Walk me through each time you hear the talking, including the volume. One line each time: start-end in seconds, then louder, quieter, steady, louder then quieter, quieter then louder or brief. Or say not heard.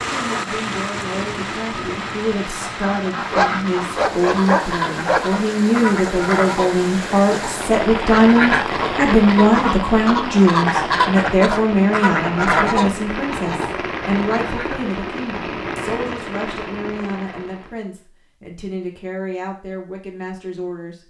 0.0-21.0 louder then quieter.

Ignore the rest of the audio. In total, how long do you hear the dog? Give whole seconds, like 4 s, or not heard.
2 s.